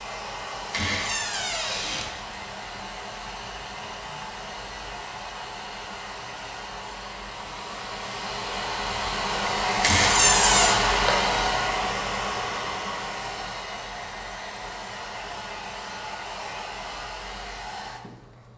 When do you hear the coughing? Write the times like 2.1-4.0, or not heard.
not heard.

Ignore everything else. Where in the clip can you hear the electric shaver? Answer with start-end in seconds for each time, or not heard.
not heard.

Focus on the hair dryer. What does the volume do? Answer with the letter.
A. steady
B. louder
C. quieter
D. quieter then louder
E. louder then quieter
E.